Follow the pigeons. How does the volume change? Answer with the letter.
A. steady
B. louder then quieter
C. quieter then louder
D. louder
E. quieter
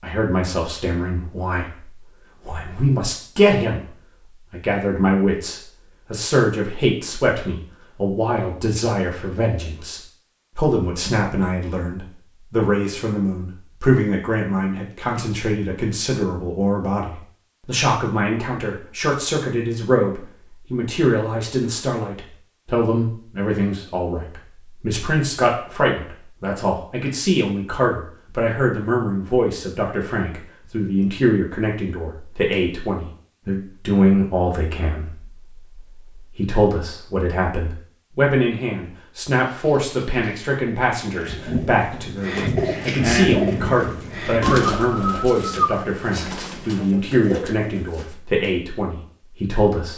B.